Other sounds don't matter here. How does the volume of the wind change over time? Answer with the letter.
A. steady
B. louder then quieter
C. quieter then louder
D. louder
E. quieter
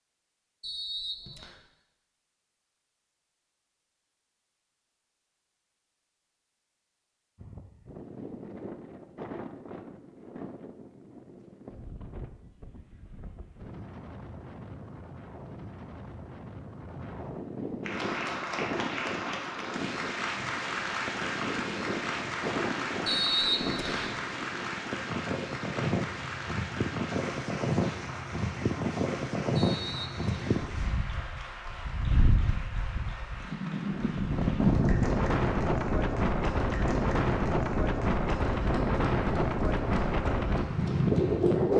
D.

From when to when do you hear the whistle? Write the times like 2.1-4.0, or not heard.
0.6-1.6, 23.1-24.2, 29.6-30.6.